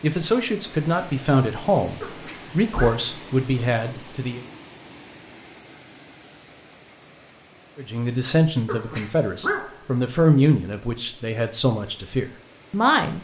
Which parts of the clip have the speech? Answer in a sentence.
You can hear the speech from 0.0 to 4.5 s and from 7.8 to 13.1 s.